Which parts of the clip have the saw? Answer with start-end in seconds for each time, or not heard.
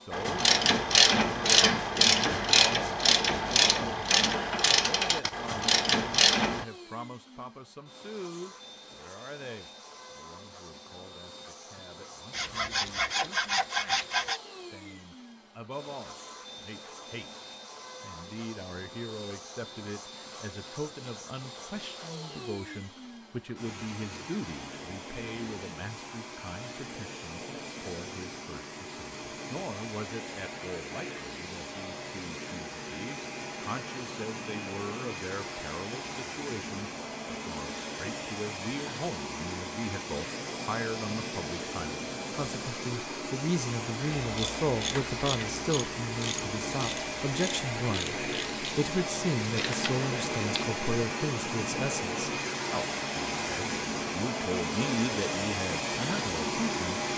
12.3-14.4.